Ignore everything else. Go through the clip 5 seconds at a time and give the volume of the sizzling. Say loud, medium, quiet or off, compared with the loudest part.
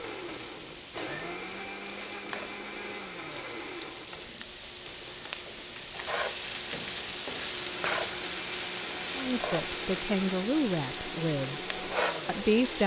medium, loud, loud.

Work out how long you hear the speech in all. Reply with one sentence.
The speech can be heard for 4 seconds in total.